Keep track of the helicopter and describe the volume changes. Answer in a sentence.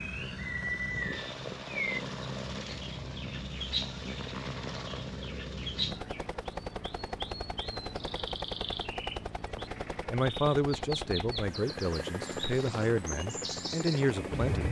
The volume of the helicopter stays about the same.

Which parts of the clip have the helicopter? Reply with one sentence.
You can hear the helicopter from 0.0 to 14.6 s.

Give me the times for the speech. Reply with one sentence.
The speech can be heard from 10.1 to 14.6 s.